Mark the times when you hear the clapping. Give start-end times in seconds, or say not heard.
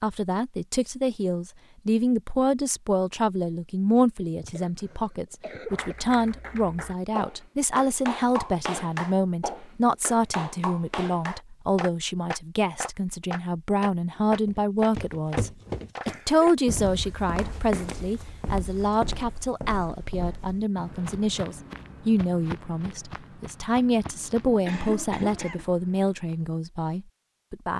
5.7-16.6.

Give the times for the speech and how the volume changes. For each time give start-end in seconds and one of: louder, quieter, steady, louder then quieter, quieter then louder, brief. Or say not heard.
0.0-27.7 steady.